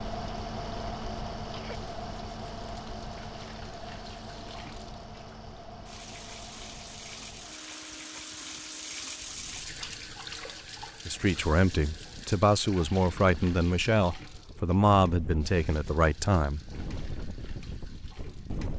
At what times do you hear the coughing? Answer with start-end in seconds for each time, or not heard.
1.1-1.8.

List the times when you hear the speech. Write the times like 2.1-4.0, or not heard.
11.1-16.6.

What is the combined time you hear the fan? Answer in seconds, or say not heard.
19 s.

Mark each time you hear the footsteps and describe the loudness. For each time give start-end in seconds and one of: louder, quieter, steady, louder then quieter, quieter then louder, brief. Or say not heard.
not heard.